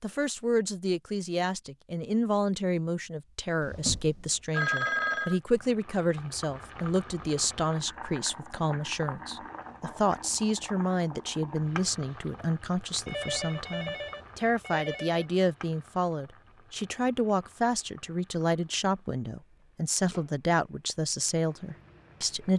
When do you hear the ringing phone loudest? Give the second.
5 s.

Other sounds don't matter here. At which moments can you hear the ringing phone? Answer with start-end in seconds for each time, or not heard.
4.5-5.4, 13.1-15.2.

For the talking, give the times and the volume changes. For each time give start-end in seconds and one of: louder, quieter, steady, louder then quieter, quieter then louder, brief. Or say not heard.
0.0-22.5 steady.